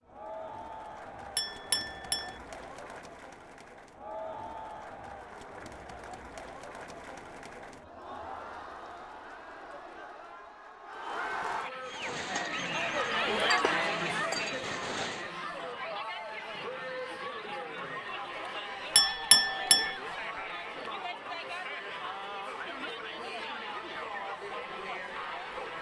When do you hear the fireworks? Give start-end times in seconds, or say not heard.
11.8-15.3.